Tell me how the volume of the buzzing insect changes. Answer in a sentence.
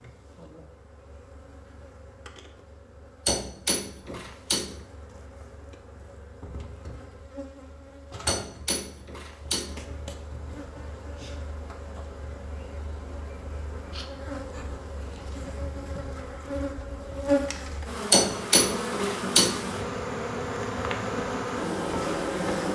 The loudness of the buzzing insect goes up.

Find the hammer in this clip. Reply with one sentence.
The hammer can be heard from 3.2 to 4.8 s, from 8.2 to 9.8 s and from 18.1 to 19.6 s.